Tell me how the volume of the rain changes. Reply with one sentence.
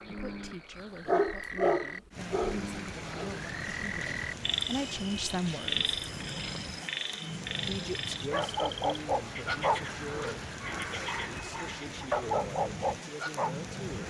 The volume of the rain stays about the same.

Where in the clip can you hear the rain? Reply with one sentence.
You can hear the rain from 2.1 to 14.0 s.